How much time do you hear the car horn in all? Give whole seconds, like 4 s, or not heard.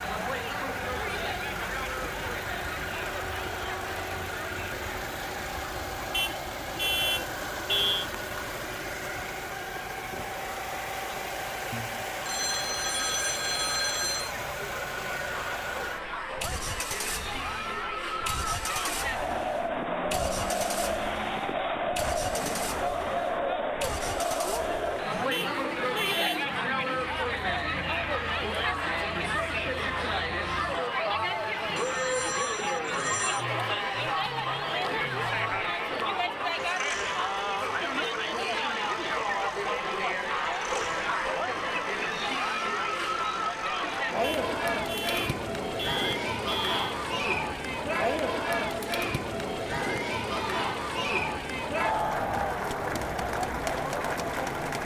6 s.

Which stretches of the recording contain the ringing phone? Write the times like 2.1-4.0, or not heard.
11.7-14.3, 31.8-33.5.